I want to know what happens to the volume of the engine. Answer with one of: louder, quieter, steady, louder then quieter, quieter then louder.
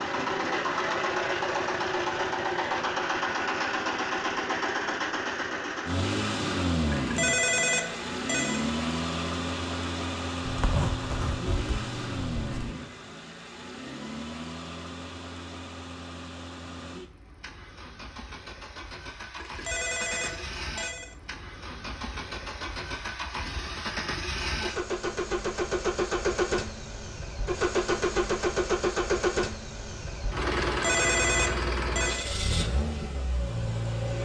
quieter then louder.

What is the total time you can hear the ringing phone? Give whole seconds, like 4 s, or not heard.
5 s.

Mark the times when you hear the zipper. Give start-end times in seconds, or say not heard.
10.4-12.8.